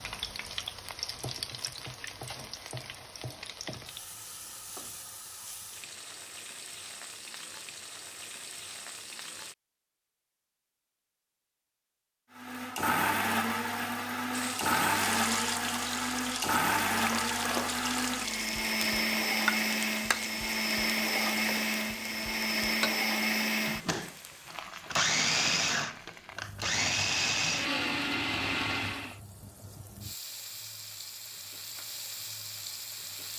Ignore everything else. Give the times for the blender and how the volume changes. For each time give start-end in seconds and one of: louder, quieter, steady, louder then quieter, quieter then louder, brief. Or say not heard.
12.3-29.1 steady.